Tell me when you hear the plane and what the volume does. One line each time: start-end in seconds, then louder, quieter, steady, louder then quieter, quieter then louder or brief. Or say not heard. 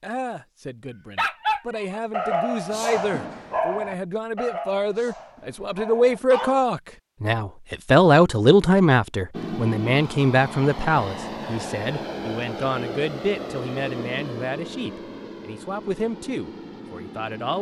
9.3-17.5 quieter.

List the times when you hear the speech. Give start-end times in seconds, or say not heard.
0.0-17.5.